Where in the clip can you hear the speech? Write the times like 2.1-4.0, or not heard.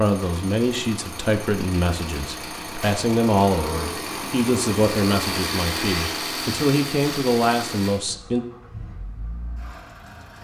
0.0-8.4.